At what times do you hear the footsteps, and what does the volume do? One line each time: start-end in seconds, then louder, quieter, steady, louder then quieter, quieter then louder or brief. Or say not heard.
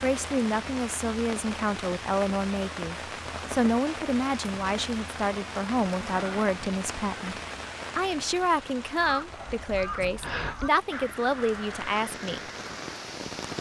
not heard.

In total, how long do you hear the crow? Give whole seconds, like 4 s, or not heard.
5 s.